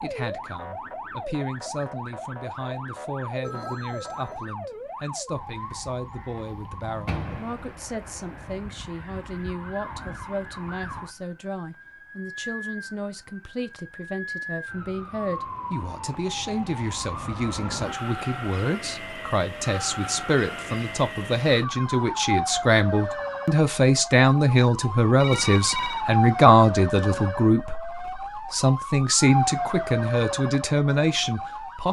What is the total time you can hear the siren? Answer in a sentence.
You can hear the siren for 32 seconds altogether.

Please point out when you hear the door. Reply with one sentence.
You can hear the door from 7.0 to 7.8 s.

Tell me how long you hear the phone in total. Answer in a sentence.
You can hear the phone for 2 seconds altogether.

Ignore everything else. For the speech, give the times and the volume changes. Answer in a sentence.
The speech can be heard from 0.0 to 31.8 s, getting louder.